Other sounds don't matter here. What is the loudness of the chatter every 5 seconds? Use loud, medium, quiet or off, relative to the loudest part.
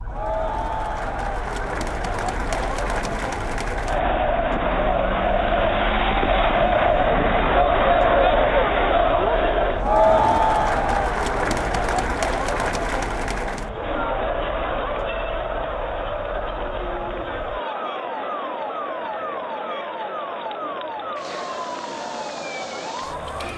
medium, loud, loud, medium, quiet.